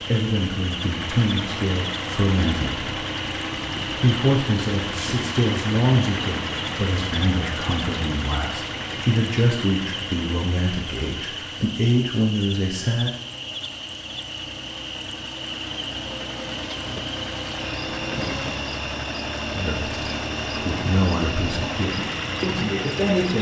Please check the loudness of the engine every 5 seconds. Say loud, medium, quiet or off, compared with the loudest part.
loud, loud, medium, loud, loud.